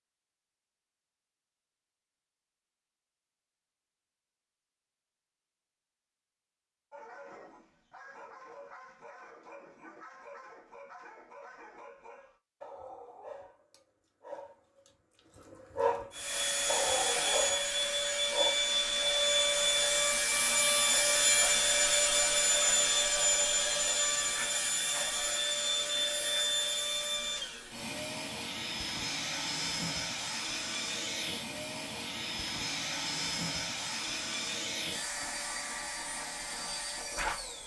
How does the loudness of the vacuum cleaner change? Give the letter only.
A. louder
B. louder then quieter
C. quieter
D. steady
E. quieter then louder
C.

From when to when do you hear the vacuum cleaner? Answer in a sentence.
You can hear the vacuum cleaner from 16.1 to 37.6 s.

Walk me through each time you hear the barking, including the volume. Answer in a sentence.
The barking can be heard from 6.9 to 18.6 s, getting louder.